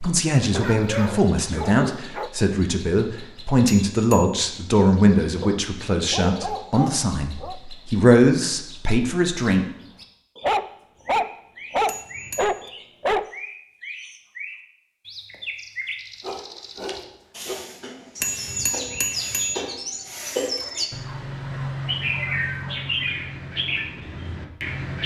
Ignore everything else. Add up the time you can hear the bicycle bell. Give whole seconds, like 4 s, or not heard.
3 s.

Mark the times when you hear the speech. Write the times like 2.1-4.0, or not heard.
0.0-9.7.